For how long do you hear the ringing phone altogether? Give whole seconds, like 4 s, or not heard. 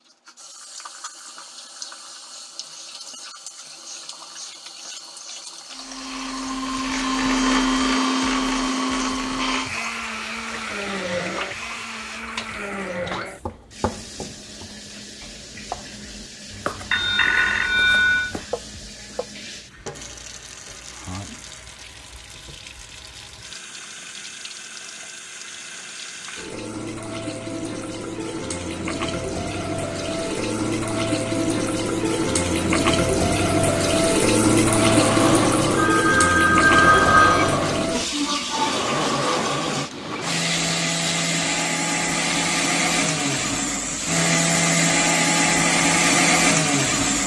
3 s.